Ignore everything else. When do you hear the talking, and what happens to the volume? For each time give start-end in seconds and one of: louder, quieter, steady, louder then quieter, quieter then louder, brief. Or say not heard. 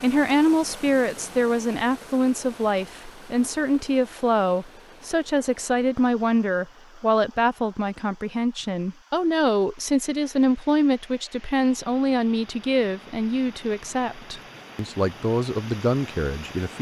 0.0-16.7 steady.